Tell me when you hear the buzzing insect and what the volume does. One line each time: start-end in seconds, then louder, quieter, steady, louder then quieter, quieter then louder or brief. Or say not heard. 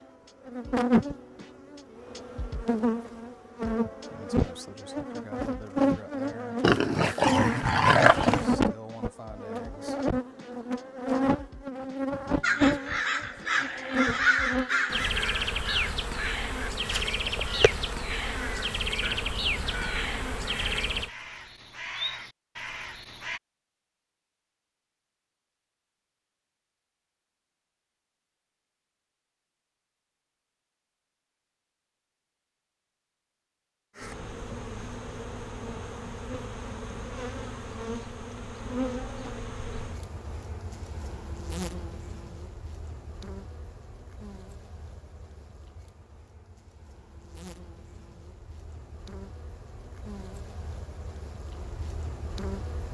0.0-21.1 steady
34.0-52.9 quieter then louder.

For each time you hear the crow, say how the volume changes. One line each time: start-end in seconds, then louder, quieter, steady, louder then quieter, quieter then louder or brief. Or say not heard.
12.4-23.4 quieter.